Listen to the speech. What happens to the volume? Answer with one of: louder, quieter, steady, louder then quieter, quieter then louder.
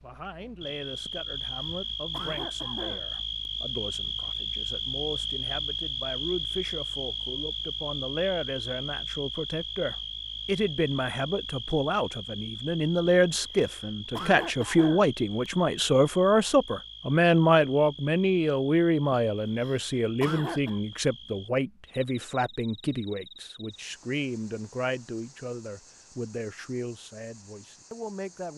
louder then quieter.